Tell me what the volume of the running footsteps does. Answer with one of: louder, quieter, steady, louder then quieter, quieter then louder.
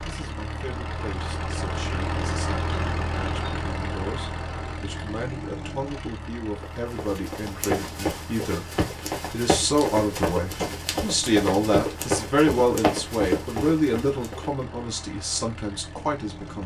steady.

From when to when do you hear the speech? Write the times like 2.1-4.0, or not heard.
0.0-8.7, 9.3-16.6.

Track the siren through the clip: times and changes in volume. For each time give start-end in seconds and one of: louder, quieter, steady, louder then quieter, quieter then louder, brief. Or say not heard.
not heard.